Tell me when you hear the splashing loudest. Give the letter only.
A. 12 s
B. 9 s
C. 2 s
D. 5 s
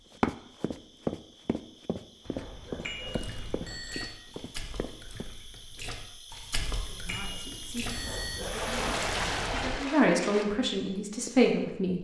B.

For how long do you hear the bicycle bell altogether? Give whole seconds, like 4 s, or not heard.
3 s.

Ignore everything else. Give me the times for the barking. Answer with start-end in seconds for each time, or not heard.
2.2-3.9, 8.0-9.8.